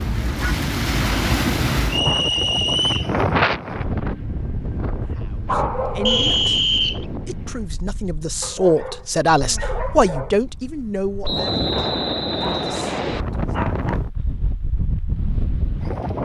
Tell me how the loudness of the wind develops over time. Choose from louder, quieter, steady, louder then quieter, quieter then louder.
quieter then louder.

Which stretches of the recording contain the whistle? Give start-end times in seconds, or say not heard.
1.9-3.1, 6.0-7.0, 11.2-13.2.